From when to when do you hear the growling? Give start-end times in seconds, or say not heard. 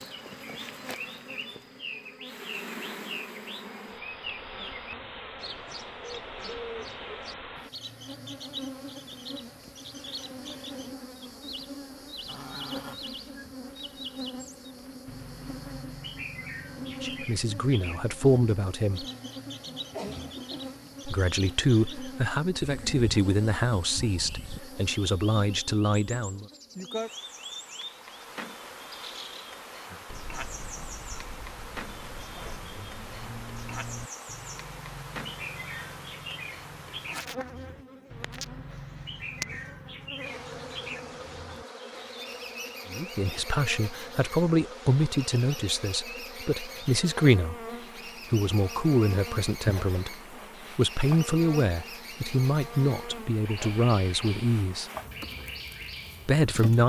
12.2-13.4.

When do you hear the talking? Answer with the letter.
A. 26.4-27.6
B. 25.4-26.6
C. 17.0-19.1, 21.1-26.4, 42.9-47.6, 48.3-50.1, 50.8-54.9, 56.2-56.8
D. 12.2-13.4
C.